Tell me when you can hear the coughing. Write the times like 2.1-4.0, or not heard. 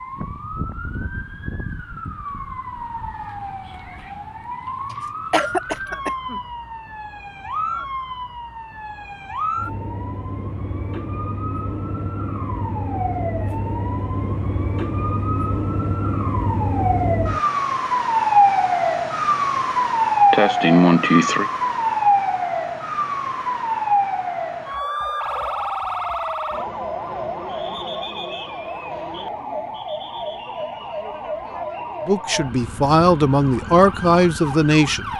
5.3-6.4, 20.3-21.5.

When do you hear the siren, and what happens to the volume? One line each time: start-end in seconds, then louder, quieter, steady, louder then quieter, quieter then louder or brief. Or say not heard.
0.0-35.1 louder then quieter.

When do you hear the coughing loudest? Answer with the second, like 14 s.
21 s.